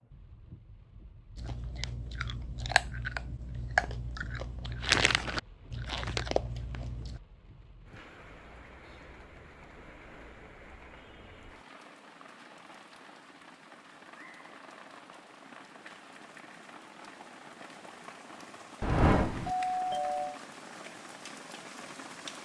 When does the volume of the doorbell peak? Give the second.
19 s.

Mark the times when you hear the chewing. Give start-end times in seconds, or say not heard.
1.4-7.2.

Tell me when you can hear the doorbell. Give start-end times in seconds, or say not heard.
18.8-20.4.